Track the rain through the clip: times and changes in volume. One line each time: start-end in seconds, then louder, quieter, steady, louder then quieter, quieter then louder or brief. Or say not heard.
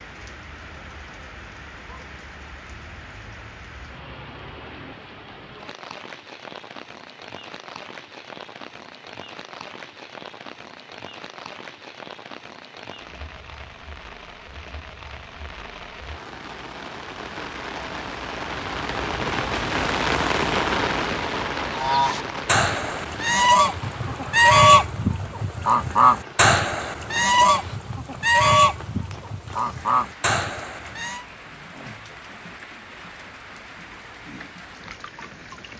0.0-35.7 louder then quieter.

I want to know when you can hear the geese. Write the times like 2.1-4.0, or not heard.
21.7-31.2.